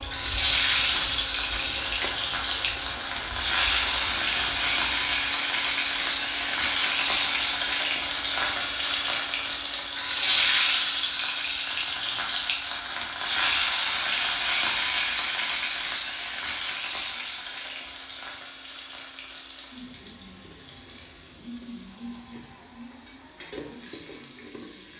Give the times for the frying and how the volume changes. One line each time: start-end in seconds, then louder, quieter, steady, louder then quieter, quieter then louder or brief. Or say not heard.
0.0-24.9 quieter.